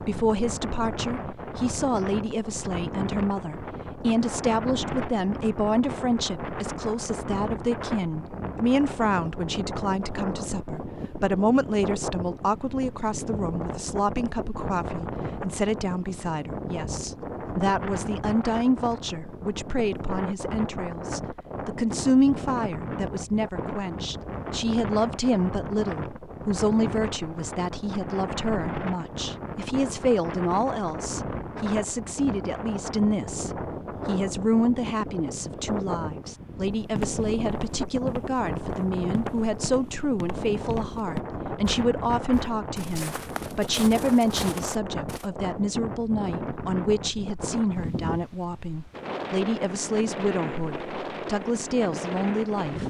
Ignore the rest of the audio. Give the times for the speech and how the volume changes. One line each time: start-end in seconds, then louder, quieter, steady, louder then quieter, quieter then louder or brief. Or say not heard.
0.0-52.8 steady.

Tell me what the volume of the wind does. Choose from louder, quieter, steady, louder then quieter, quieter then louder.
steady.